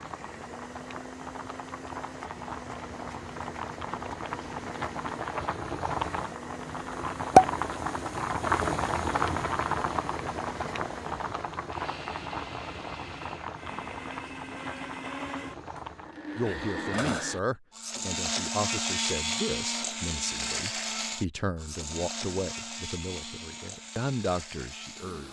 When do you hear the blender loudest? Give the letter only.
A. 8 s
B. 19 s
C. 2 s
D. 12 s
B.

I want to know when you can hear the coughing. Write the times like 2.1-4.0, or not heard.
not heard.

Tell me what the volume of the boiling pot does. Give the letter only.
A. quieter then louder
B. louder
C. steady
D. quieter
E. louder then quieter
E.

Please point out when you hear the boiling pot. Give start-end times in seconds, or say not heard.
0.0-16.3.